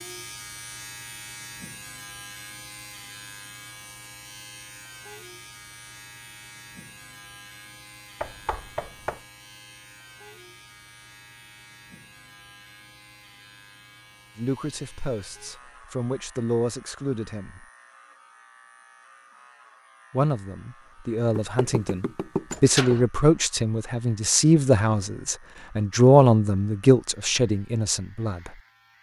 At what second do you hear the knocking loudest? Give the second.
23 s.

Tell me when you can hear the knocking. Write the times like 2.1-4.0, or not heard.
8.2-9.2, 21.4-23.1.